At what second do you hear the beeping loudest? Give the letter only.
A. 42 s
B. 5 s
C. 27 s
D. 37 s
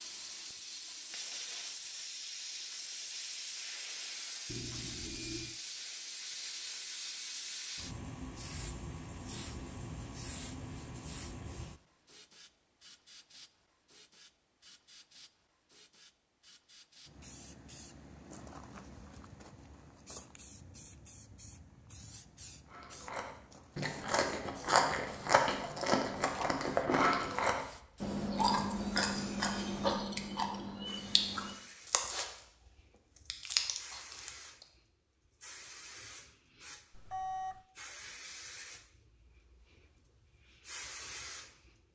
D.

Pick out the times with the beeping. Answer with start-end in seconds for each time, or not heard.
4.5-5.5, 36.9-37.6.